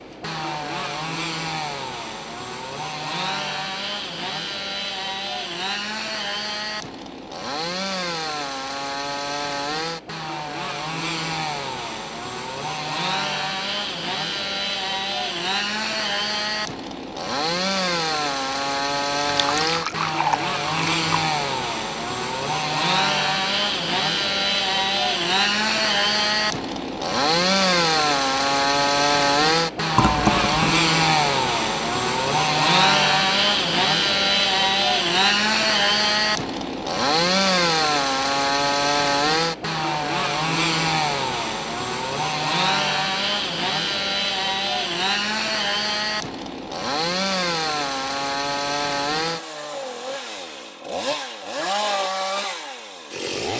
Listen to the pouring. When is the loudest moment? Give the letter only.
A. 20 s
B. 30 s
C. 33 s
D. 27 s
B.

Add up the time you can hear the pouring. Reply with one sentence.
The pouring can be heard for 3 seconds in total.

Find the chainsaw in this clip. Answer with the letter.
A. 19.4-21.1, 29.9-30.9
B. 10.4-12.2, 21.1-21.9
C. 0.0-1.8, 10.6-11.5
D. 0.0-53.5
D.